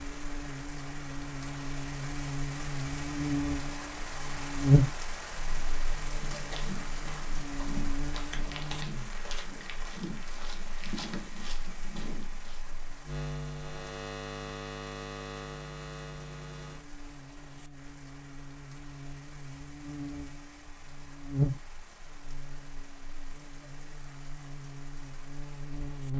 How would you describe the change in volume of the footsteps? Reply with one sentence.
The volume of the footsteps stays about the same.